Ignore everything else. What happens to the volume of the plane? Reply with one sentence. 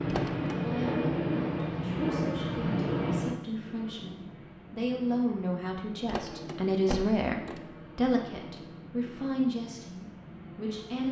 The volume of the plane goes down.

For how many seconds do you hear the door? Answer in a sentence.
The door can be heard for 2 seconds in total.